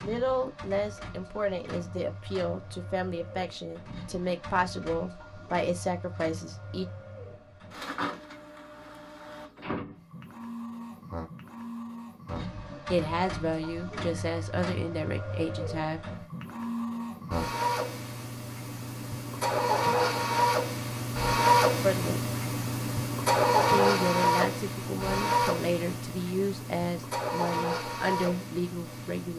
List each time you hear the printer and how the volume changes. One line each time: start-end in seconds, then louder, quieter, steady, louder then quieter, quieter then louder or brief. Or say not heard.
0.0-29.3 louder.